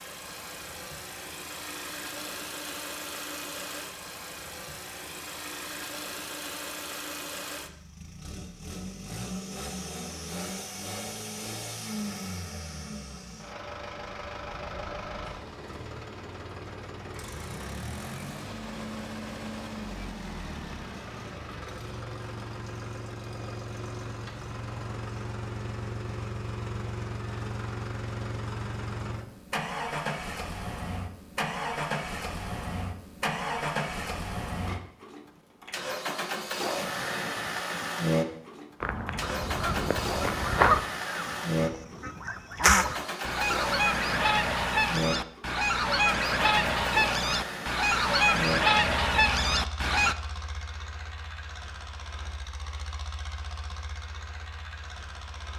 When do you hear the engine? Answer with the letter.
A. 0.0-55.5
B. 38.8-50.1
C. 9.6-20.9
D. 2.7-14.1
A.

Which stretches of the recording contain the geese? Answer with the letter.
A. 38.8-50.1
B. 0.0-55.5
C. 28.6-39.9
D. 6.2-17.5
A.